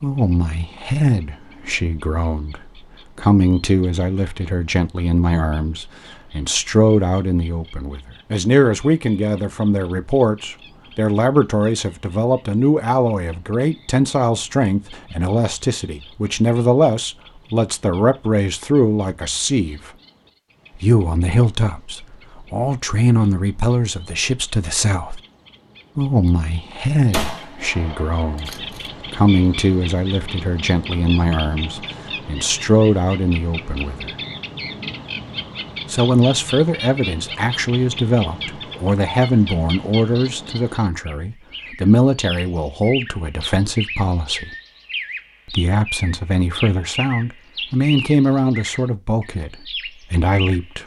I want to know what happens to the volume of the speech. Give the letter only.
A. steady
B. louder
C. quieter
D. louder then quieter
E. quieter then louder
A.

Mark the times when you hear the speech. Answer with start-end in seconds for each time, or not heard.
0.0-19.9, 20.8-25.2, 25.9-34.1, 35.9-44.5, 45.5-50.8.